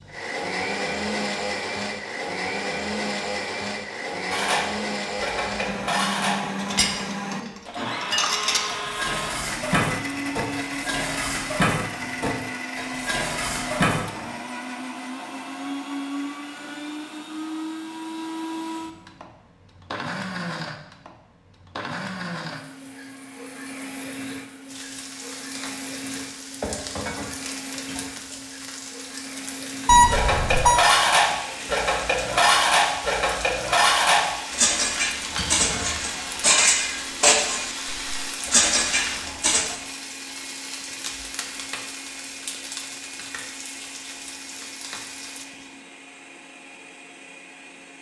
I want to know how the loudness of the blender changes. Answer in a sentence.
The volume of the blender goes down.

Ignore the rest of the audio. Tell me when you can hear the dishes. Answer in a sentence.
You can hear the dishes from 4.3 to 14.3 s and from 30.1 to 39.8 s.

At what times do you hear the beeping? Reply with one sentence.
The beeping can be heard from 29.9 to 30.9 s.